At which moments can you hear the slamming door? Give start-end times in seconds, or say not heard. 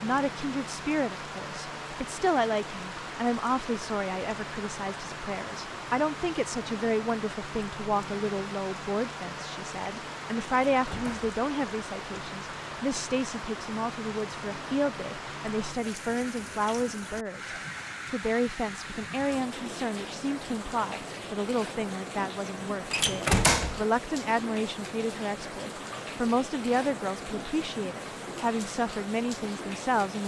10.7-11.3, 22.9-23.9.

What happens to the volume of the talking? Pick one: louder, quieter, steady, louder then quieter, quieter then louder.
steady.